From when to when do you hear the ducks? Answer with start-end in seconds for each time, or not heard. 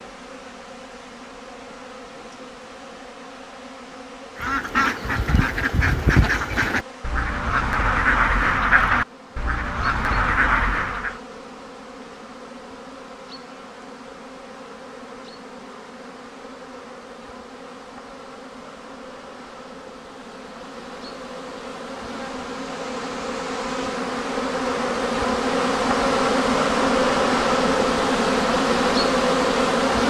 4.3-11.2.